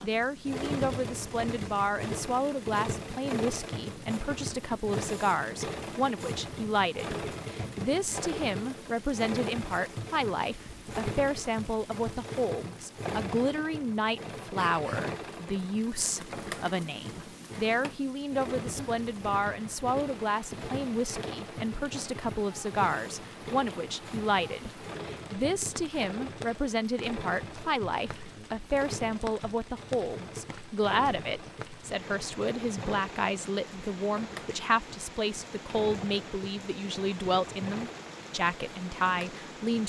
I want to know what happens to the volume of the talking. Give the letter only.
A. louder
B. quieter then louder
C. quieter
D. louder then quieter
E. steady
E.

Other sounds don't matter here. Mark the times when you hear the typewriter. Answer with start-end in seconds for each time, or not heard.
not heard.